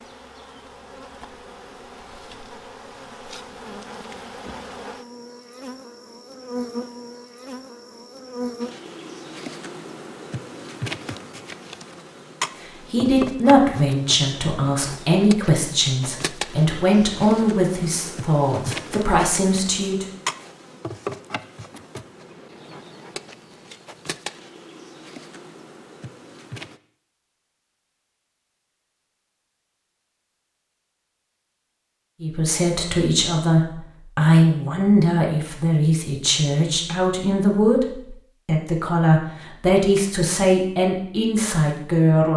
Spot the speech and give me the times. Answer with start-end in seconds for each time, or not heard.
12.9-20.1, 32.2-42.3.